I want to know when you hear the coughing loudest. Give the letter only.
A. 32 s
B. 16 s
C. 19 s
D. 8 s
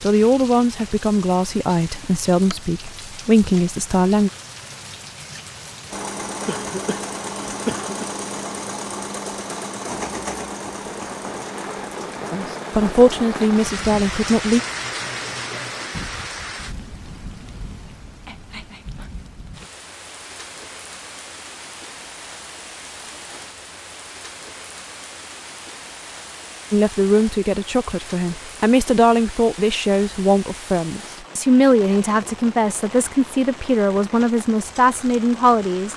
D.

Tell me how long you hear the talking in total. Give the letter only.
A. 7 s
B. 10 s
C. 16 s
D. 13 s
C.